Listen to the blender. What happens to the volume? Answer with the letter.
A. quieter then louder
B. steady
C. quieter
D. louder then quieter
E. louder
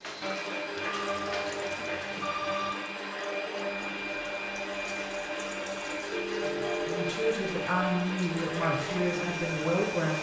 B.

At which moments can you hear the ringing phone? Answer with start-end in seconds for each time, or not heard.
0.8-2.8, 6.1-7.2.